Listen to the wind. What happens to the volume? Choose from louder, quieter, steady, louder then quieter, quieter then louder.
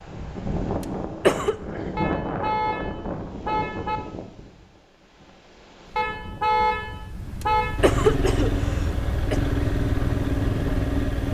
quieter then louder.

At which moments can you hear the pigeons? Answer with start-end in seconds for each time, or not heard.
not heard.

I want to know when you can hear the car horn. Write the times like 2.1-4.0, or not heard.
1.9-4.0, 6.0-7.8.